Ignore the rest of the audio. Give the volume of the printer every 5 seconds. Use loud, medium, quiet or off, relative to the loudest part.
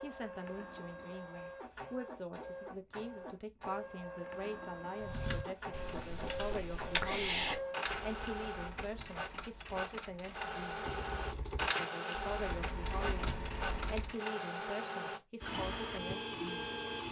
medium, loud, loud, loud.